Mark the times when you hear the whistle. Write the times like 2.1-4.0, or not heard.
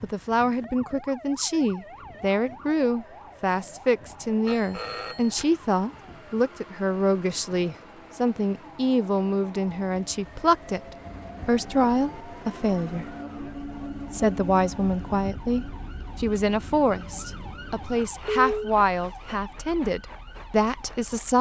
not heard.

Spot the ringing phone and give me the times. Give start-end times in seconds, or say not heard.
4.5-5.5, 11.1-11.9, 18.2-18.8.